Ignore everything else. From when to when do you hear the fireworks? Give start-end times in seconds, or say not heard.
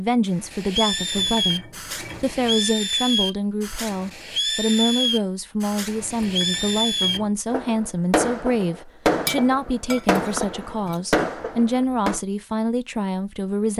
0.4-12.2.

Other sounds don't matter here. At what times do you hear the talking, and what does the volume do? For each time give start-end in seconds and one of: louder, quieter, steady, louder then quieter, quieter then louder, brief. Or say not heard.
0.0-13.7 steady.